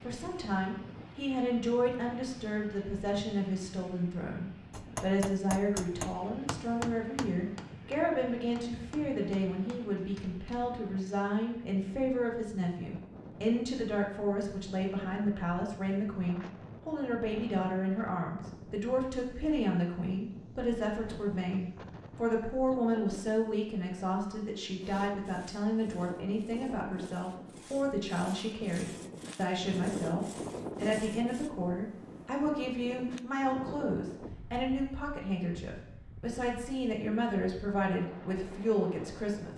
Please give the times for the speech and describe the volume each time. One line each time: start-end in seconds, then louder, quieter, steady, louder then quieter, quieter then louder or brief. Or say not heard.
0.0-39.5 steady.